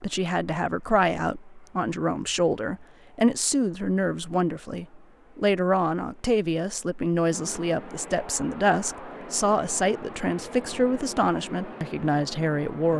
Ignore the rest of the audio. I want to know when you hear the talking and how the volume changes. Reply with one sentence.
You can hear the talking from 0.0 to 12.9 s, at a steady volume.